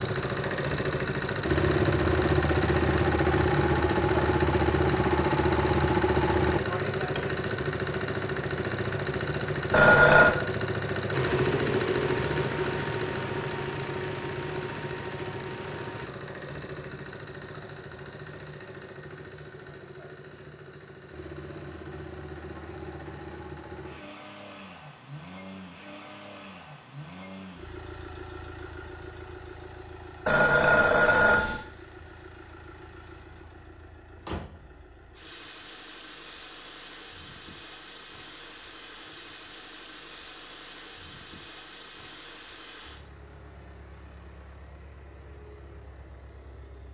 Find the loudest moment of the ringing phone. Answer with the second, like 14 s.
10 s.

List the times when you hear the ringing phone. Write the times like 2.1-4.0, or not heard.
9.7-10.3, 30.2-31.6.